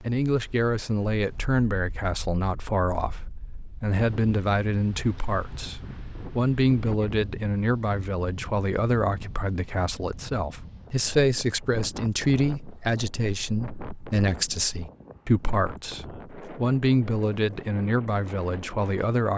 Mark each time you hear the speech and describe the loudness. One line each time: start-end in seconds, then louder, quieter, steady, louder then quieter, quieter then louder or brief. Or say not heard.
0.0-19.3 steady.